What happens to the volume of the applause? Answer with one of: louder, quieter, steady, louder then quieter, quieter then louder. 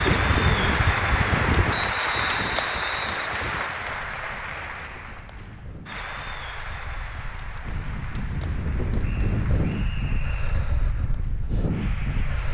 quieter.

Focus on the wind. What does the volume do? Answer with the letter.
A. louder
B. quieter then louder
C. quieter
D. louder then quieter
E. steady
B.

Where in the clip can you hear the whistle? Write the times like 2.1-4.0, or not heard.
1.7-3.7, 9.0-10.6.